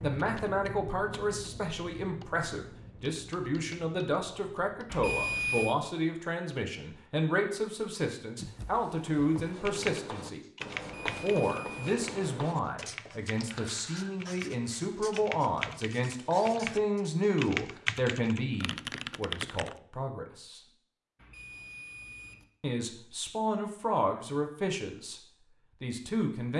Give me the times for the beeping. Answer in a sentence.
You can hear the beeping from 4.9 to 5.8 s, from 10.8 to 11.9 s and from 21.1 to 22.4 s.